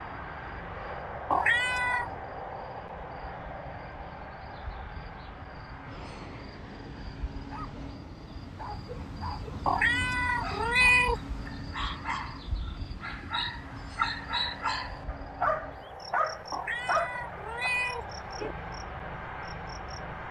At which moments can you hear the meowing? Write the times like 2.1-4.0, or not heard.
1.3-2.1, 9.7-11.2, 16.5-18.6.